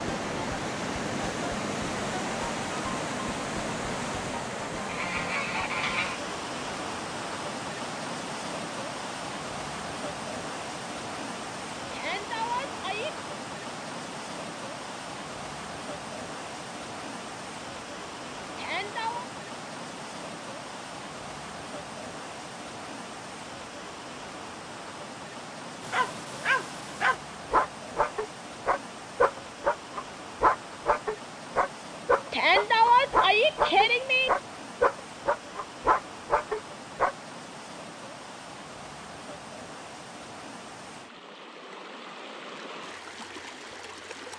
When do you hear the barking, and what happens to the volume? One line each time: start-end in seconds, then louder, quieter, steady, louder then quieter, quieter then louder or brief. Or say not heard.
25.8-37.1 steady.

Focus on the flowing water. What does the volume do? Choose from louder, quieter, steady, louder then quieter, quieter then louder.
quieter.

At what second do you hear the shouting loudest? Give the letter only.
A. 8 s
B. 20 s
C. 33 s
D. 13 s
C.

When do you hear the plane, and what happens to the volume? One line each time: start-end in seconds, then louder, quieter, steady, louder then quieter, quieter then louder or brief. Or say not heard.
not heard.